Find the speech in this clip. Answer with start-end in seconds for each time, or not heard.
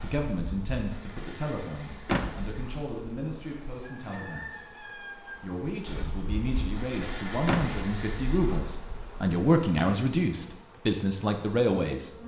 0.0-12.1.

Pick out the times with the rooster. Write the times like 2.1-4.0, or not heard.
3.8-5.3.